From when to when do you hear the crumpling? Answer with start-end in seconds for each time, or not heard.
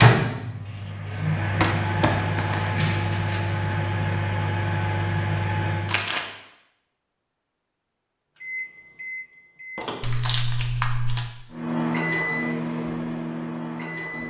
1.6-2.7, 5.8-6.2, 10.0-11.3.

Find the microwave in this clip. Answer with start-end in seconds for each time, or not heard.
0.0-6.0, 8.4-10.0, 11.5-14.2.